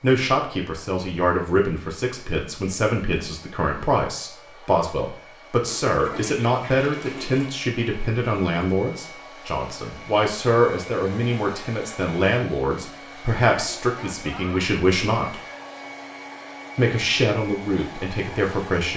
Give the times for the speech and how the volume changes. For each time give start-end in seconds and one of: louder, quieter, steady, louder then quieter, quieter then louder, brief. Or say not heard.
0.0-15.4 steady
16.8-18.9 brief.